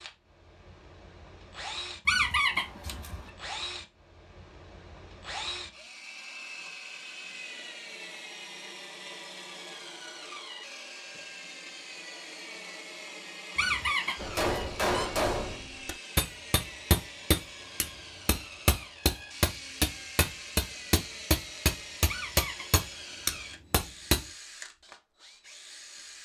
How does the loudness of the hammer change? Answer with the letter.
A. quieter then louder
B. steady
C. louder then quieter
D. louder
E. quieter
B.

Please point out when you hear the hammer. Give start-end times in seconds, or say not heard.
14.2-24.2.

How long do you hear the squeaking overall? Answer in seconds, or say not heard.
3 s.